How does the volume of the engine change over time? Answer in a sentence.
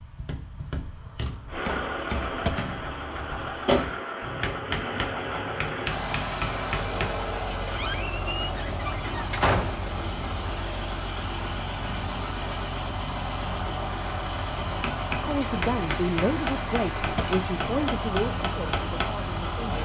The loudness of the engine stays about the same.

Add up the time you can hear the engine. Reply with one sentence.
You can hear the engine for 18 seconds altogether.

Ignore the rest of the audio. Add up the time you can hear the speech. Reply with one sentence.
The speech can be heard for 5 seconds in total.